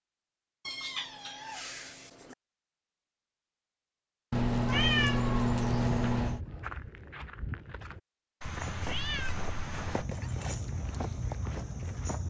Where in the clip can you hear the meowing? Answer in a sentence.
You can hear the meowing from 0.7 to 2.4 s, from 4.3 to 6.4 s and from 8.4 to 10.1 s.